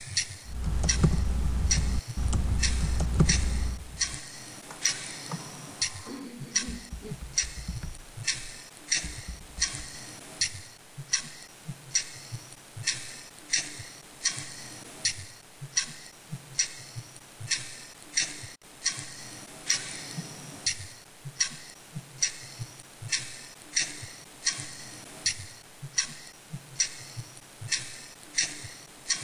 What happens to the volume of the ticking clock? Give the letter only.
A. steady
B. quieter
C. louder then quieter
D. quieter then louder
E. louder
A.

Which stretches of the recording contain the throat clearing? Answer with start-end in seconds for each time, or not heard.
6.0-7.2.